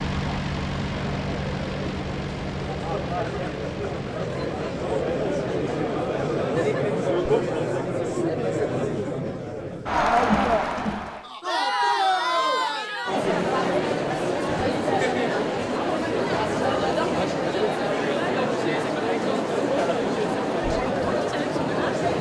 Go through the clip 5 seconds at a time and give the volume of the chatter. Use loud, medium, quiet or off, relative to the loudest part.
medium, loud, loud, loud, loud.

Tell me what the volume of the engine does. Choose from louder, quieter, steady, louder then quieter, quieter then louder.
quieter.